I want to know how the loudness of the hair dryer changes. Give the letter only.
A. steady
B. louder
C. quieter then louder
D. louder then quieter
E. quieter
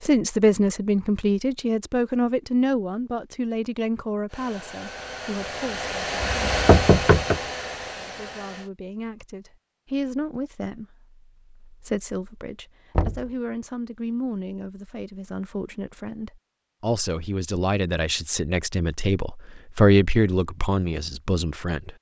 D.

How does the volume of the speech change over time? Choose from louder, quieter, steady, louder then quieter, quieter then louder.
quieter then louder.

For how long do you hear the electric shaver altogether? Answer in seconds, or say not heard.
not heard.